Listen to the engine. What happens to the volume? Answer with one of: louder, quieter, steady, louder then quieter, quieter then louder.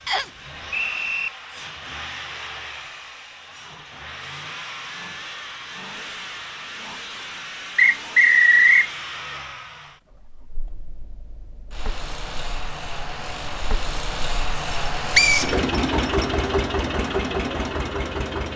louder.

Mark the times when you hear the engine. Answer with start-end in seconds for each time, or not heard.
0.0-18.5.